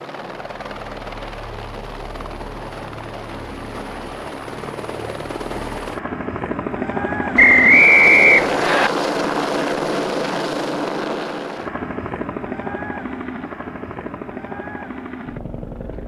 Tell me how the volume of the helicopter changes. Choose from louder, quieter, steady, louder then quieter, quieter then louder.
louder then quieter.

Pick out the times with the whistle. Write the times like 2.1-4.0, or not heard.
7.3-8.9.